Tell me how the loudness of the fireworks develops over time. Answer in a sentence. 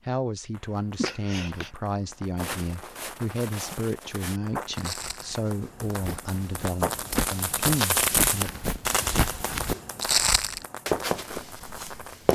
The loudness of the fireworks goes up, then down.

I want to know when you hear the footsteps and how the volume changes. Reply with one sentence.
The footsteps can be heard from 2.4 to 12.3 s, getting louder.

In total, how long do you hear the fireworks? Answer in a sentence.
You can hear the fireworks for 12 seconds altogether.